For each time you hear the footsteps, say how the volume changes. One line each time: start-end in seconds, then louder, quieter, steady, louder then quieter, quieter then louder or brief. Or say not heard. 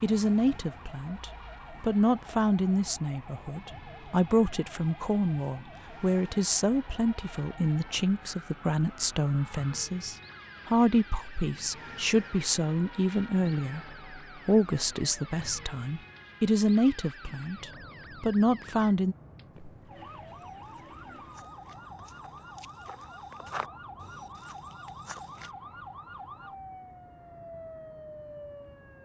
19.5-25.5 louder then quieter.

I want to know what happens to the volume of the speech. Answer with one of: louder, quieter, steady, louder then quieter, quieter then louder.
steady.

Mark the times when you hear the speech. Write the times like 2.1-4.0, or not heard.
0.0-19.1.